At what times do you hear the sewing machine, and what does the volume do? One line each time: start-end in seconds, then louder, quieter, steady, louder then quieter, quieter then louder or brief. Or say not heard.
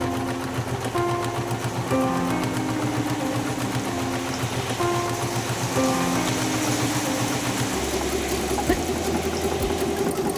0.0-10.3 steady.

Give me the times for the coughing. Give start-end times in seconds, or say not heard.
8.2-8.8.